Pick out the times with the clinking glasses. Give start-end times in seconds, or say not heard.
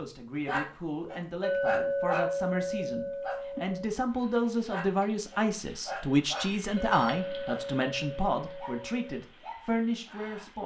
1.4-3.9, 6.8-9.2.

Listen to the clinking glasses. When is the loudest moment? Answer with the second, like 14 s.
2 s.